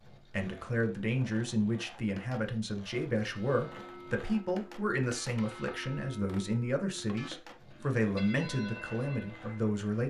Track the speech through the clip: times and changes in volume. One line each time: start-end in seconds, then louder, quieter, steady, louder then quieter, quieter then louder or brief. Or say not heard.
0.3-10.0 steady.